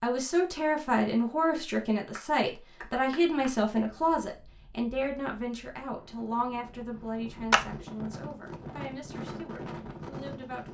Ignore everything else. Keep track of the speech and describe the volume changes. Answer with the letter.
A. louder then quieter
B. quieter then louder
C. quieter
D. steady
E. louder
C.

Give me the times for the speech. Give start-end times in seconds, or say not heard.
0.0-10.7.